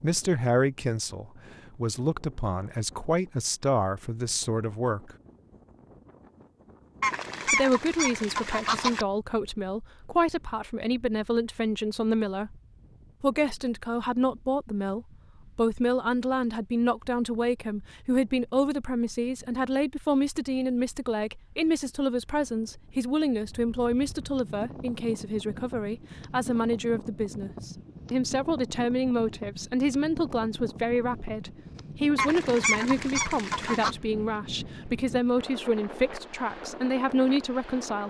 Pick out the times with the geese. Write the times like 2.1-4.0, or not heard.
7.0-9.1, 32.1-34.0.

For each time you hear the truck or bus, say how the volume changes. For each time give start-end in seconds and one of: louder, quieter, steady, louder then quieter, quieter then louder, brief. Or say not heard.
not heard.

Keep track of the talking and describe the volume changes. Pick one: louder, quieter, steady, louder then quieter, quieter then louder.
steady.